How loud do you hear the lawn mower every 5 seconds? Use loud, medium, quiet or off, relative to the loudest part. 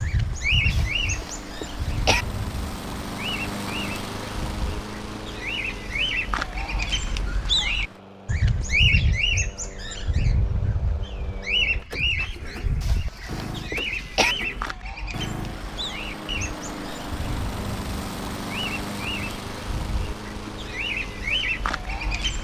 loud, medium, medium, loud, medium.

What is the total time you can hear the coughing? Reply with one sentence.
You can hear the coughing for 3 seconds altogether.